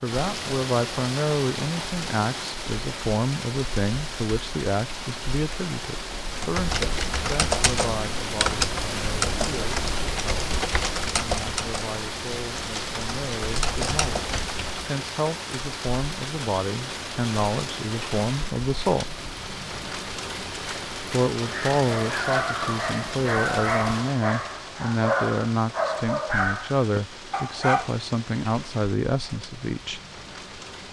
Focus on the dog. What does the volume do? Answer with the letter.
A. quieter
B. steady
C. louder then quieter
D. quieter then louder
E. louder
B.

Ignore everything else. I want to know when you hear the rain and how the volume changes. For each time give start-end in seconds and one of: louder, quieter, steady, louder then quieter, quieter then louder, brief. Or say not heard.
0.0-30.8 quieter.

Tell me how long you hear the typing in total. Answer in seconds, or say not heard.
9 s.